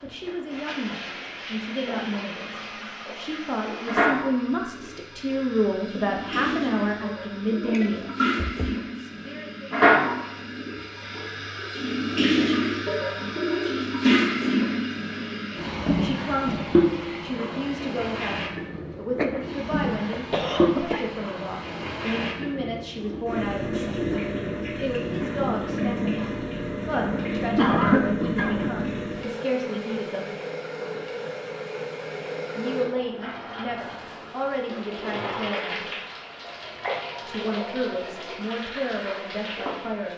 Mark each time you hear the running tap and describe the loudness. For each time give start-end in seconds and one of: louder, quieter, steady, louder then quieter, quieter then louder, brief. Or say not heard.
0.0-40.1 louder then quieter.